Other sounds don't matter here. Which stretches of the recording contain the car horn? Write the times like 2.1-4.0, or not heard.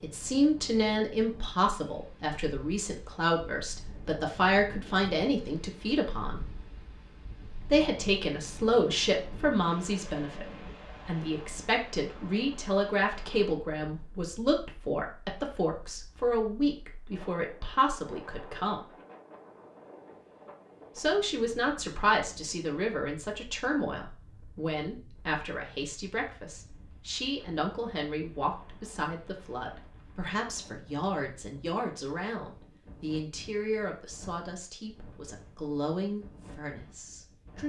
not heard.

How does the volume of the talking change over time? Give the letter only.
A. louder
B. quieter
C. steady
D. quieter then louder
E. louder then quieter
B.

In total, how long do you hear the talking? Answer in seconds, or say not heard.
34 s.